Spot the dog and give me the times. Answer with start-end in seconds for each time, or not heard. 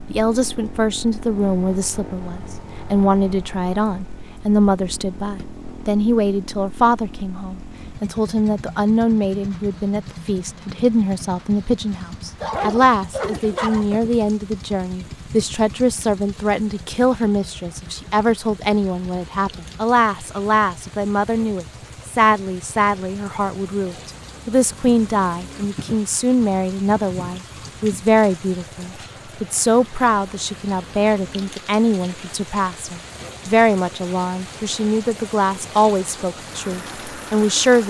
12.4-14.0.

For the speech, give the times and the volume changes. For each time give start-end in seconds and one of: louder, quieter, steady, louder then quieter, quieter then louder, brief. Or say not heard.
0.1-37.8 steady.